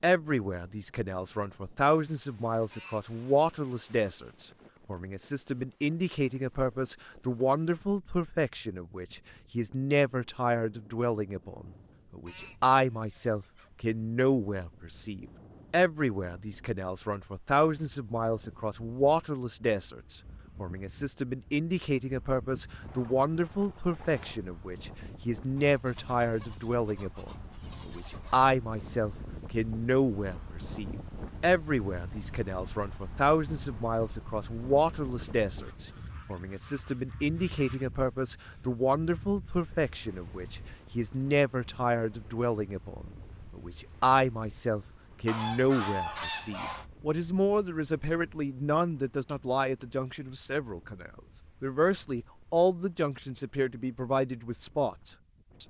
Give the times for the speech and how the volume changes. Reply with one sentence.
The speech can be heard from 0.0 to 55.6 s, at a steady volume.